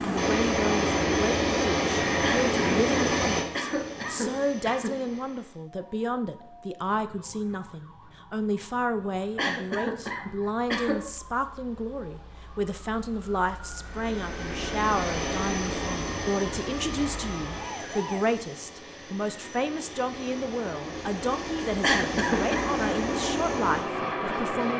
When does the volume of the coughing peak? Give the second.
22 s.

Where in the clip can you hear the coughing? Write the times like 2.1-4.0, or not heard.
2.2-4.9, 9.3-10.9, 21.8-22.6.